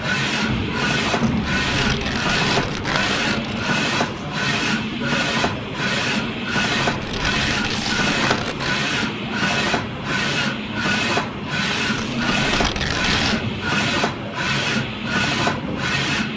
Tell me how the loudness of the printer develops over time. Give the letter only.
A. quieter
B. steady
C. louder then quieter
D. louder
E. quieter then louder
B.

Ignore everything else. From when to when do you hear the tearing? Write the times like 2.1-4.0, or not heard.
1.2-3.8, 6.8-8.8, 11.9-13.4.